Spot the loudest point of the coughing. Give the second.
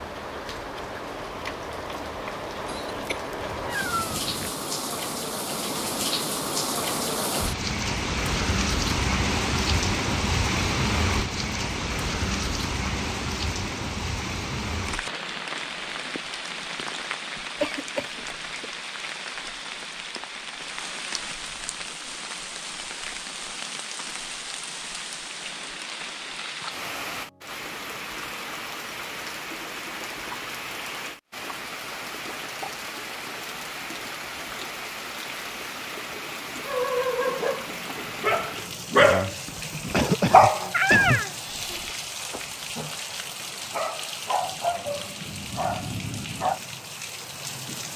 40 s.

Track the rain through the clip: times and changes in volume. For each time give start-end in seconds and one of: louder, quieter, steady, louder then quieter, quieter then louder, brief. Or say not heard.
0.0-47.9 quieter.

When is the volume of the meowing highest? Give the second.
41 s.